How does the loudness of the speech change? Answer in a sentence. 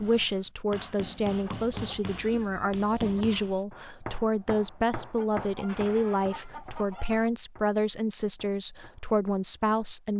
The volume of the speech stays about the same.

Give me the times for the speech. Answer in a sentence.
You can hear the speech from 0.0 to 10.1 s.